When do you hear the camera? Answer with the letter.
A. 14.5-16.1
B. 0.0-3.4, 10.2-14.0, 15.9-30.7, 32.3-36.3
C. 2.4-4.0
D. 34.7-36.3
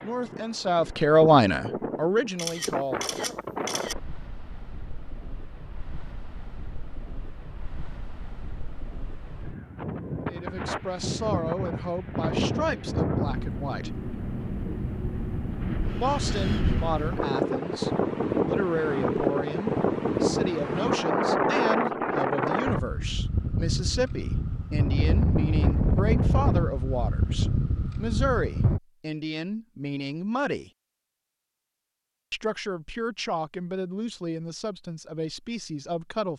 C.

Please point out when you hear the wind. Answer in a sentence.
The wind can be heard from 0.0 to 28.8 s.